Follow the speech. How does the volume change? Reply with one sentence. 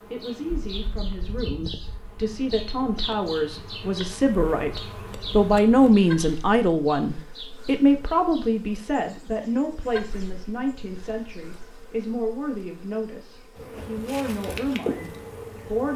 The loudness of the speech goes up, then down.